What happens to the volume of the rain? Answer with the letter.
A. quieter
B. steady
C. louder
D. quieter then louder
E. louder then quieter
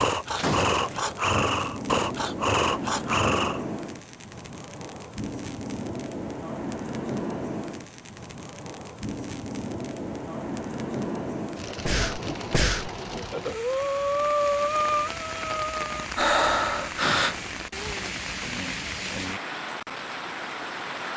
B.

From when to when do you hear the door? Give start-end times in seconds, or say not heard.
0.3-1.0, 16.9-17.6.